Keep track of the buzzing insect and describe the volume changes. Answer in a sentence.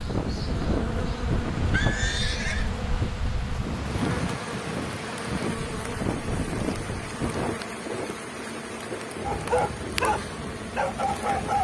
The loudness of the buzzing insect stays about the same.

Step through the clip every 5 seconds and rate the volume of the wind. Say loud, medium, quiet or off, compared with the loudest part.
loud, loud, medium.